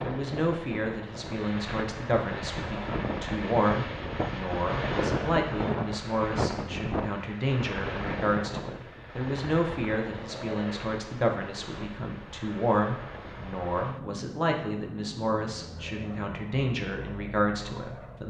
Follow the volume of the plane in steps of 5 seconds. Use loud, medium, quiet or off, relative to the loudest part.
loud, loud, medium, medium.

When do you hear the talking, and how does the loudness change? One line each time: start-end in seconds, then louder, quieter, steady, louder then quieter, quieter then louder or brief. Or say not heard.
0.0-18.2 steady.